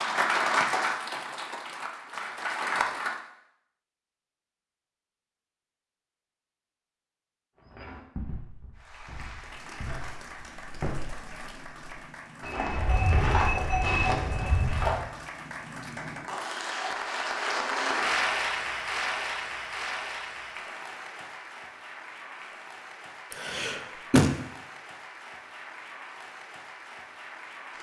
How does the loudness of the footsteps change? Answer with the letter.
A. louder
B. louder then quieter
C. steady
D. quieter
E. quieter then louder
A.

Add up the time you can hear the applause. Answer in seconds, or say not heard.
22 s.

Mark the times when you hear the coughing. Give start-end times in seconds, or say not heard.
23.3-24.3.